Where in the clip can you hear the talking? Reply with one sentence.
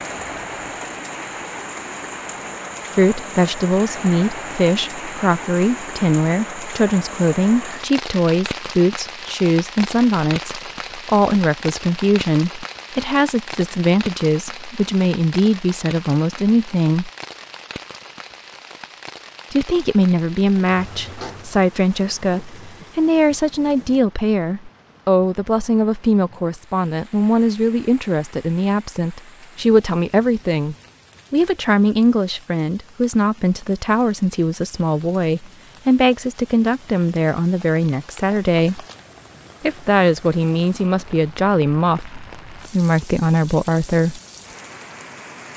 The talking can be heard from 3.0 to 17.1 s, from 19.5 to 38.9 s and from 39.6 to 44.2 s.